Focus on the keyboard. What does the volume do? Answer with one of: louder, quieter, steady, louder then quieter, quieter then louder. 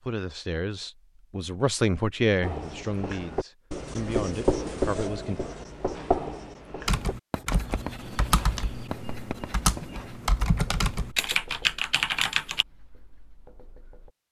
louder.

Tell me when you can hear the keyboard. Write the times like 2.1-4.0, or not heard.
6.8-12.7.